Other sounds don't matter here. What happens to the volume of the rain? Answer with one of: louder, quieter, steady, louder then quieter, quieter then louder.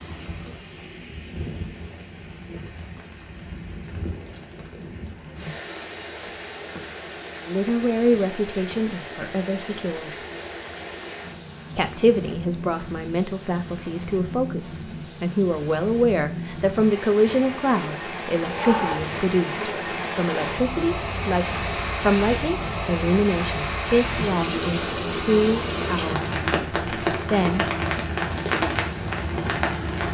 louder.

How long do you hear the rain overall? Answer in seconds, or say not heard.
30 s.